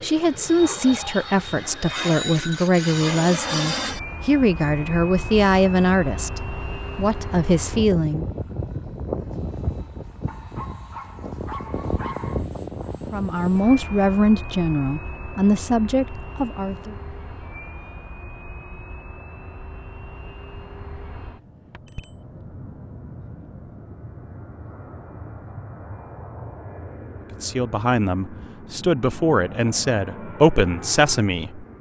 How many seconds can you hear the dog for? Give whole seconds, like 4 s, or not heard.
2 s.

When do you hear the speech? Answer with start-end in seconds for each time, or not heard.
0.0-8.2, 13.1-16.9, 27.4-31.6.